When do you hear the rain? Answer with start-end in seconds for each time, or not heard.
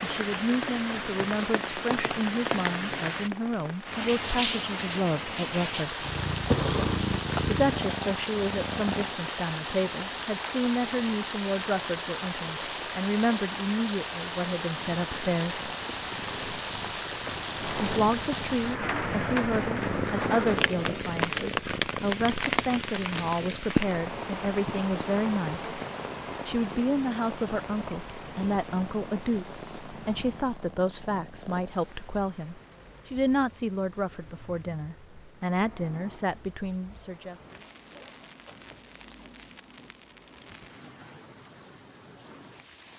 0.0-42.9.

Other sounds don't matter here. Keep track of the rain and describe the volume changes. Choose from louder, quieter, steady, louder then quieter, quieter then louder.
quieter.